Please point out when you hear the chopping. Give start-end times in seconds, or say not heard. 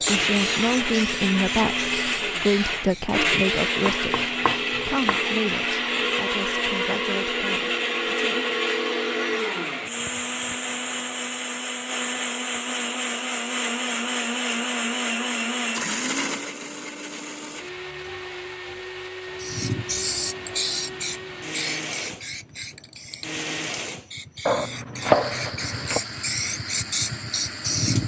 3.9-5.2, 24.4-26.0.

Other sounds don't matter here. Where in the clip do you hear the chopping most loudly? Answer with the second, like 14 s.
25 s.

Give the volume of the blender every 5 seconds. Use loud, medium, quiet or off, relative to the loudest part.
loud, loud, loud, medium, medium, medium.